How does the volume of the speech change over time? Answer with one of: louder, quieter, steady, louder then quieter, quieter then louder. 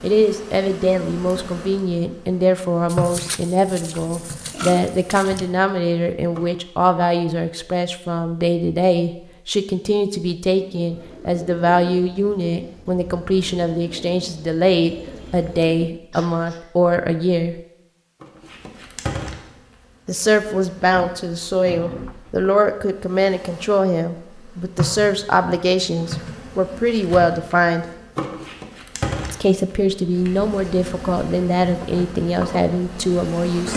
steady.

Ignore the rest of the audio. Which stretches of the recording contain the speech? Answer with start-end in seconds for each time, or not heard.
0.0-17.6, 20.1-27.9, 29.3-33.7.